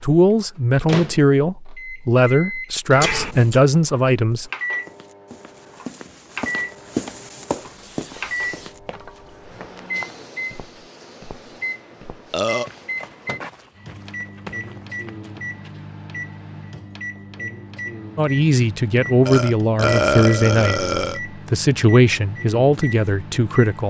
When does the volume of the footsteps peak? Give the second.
7 s.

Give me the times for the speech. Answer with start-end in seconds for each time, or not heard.
0.0-4.5, 18.1-23.8.